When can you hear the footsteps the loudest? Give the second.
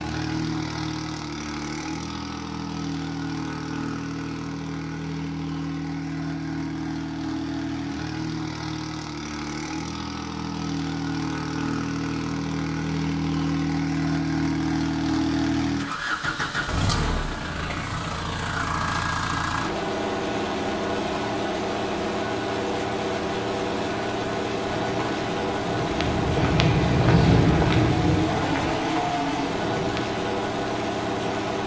27 s.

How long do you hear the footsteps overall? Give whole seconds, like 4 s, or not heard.
5 s.